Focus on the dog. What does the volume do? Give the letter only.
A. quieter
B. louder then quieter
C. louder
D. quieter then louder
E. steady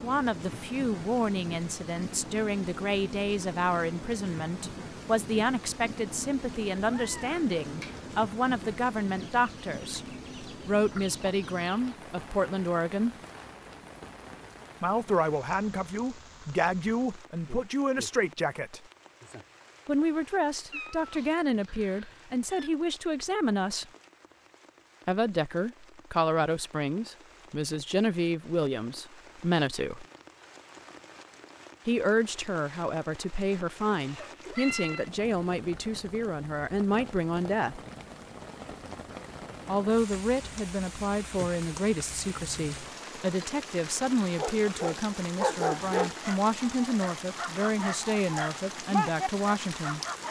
D.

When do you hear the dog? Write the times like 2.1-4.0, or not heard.
44.4-50.2.